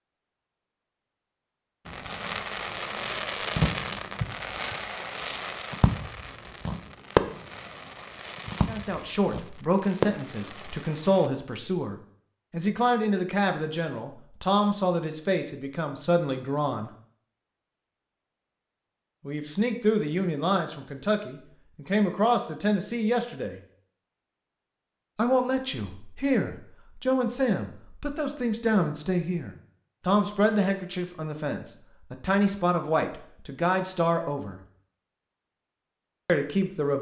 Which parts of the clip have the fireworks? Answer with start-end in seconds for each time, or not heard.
1.9-11.3.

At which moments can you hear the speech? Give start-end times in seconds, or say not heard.
8.7-16.9, 19.2-23.6, 25.1-34.6, 36.2-36.9.